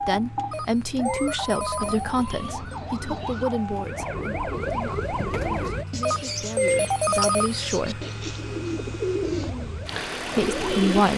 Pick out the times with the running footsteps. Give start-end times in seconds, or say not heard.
not heard.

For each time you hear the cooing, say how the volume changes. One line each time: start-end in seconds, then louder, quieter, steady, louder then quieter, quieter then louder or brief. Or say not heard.
1.8-11.1 louder.